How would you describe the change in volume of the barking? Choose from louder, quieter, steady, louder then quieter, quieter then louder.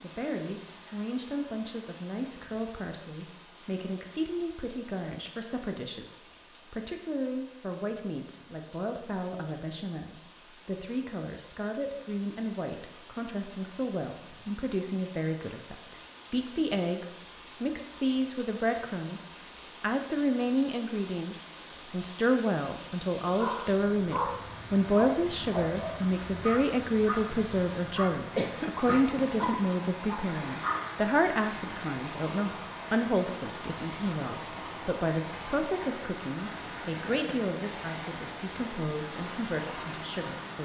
steady.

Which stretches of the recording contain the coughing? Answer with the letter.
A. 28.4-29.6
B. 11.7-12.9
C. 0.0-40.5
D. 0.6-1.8
A.